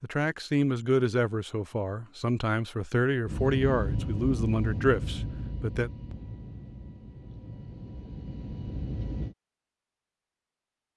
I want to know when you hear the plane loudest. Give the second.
4 s.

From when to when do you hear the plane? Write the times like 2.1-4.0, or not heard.
3.2-9.3.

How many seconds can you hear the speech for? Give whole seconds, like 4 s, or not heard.
6 s.